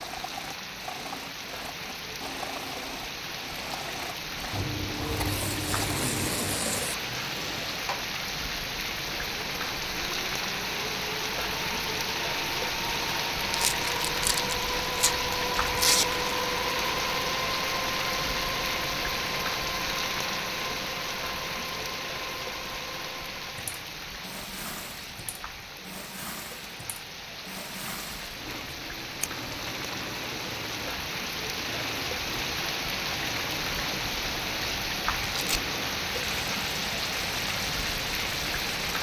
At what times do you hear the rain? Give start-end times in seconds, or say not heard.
0.0-38.9.